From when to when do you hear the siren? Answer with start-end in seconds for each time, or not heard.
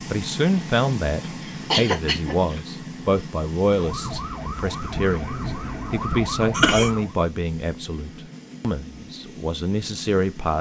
3.6-7.2.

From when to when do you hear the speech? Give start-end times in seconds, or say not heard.
0.1-10.5.